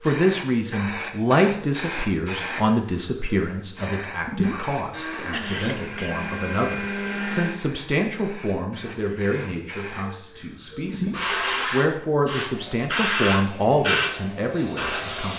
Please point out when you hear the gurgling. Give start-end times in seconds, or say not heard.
4.2-4.8, 10.8-11.4.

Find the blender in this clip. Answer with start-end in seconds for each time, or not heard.
4.9-7.5, 12.4-15.3.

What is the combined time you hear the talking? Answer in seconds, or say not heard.
15 s.